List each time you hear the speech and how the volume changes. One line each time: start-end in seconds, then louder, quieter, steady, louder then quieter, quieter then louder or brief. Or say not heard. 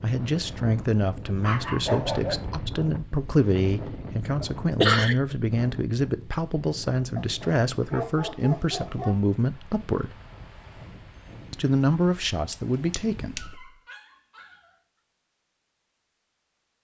0.0-10.2 steady
11.5-13.5 brief.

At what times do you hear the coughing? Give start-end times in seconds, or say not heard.
4.4-5.2, 12.5-13.4.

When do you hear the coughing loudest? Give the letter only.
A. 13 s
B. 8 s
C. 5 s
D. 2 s
C.